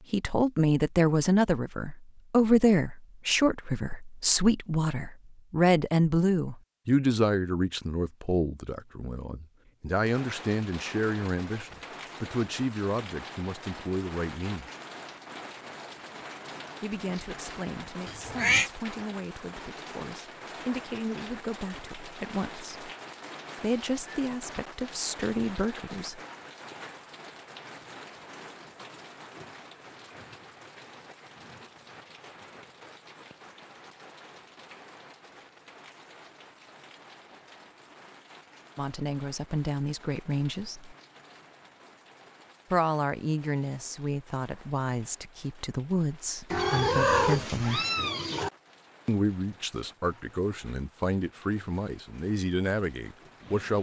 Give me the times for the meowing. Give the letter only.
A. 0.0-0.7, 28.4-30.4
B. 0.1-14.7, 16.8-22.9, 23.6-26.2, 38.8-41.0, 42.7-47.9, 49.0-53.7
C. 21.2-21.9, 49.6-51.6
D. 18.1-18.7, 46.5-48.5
D.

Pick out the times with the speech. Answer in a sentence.
The speech can be heard from 0.1 to 14.7 s, from 16.8 to 22.9 s, from 23.6 to 26.2 s, from 38.8 to 41.0 s, from 42.7 to 47.9 s and from 49.0 to 53.7 s.